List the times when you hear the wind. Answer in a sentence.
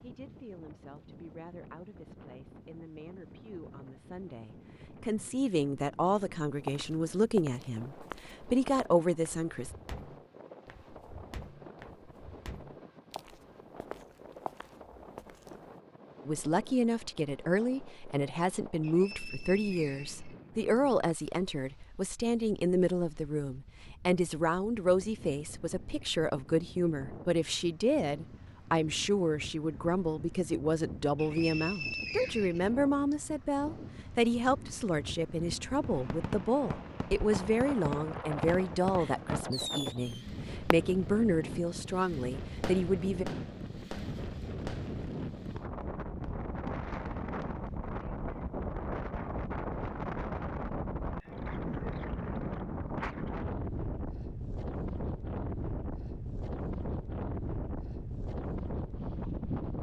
The wind can be heard from 0.0 to 59.7 s.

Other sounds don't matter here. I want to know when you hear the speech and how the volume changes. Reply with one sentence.
You can hear the speech from 0.0 to 9.7 s, getting louder; and from 16.2 to 43.2 s, at a steady volume.